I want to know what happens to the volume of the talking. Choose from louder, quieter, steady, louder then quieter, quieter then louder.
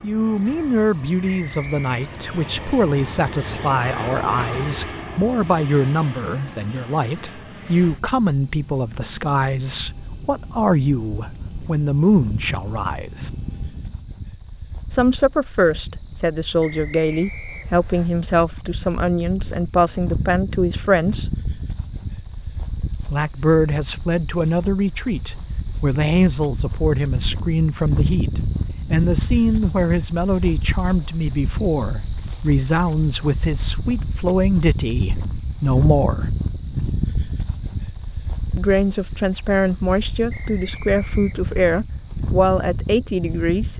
steady.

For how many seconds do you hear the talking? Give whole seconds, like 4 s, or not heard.
38 s.